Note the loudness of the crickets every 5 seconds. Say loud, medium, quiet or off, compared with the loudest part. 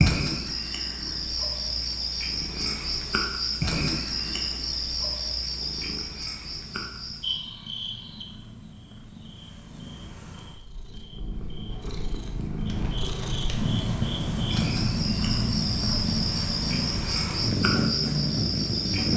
loud, medium, medium, loud.